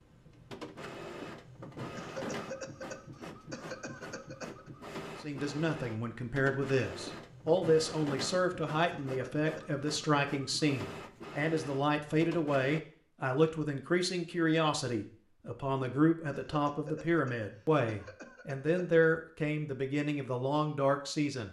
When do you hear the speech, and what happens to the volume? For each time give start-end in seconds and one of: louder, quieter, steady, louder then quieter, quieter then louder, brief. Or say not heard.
5.2-21.4 steady.